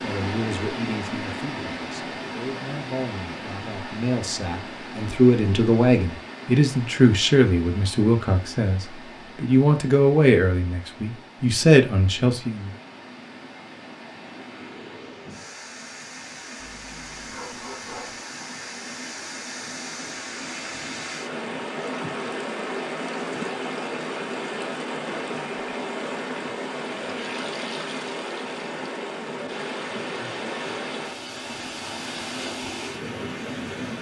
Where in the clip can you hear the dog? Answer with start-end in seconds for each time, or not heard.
16.6-18.2.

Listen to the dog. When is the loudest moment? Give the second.
18 s.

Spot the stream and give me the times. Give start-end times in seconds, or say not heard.
0.0-33.9.